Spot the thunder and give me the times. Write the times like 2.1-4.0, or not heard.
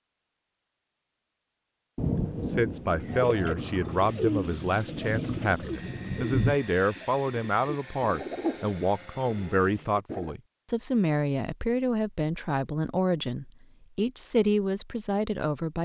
1.9-6.6.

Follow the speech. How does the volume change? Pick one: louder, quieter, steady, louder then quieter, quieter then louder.
steady.